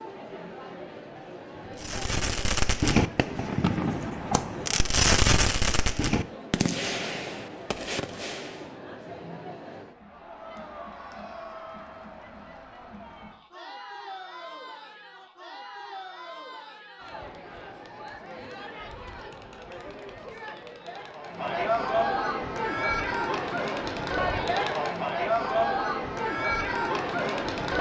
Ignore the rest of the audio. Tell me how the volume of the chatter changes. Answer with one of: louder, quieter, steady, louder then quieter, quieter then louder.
louder.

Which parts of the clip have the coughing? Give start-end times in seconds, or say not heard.
not heard.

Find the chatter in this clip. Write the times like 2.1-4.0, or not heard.
0.0-27.7.